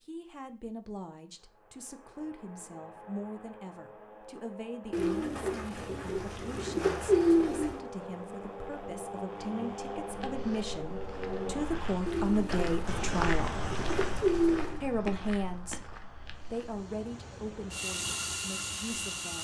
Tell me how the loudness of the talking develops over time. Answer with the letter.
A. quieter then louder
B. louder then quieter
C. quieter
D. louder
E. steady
B.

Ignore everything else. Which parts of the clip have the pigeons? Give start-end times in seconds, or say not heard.
4.9-7.8, 12.1-14.8.